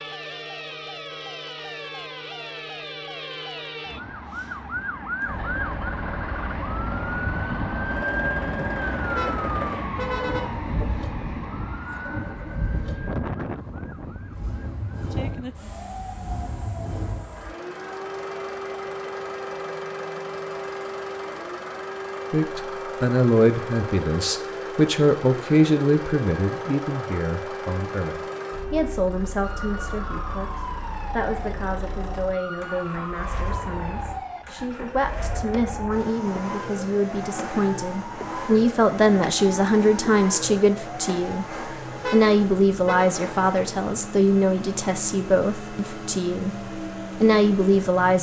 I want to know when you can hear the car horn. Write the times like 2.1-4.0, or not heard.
9.1-10.8, 42.0-43.1.